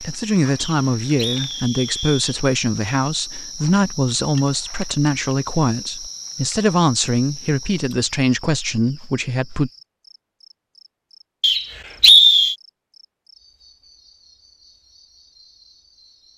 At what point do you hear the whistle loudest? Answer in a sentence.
The loudest moment of the whistle is at 12 seconds.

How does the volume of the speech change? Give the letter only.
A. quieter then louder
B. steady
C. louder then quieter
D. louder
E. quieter
B.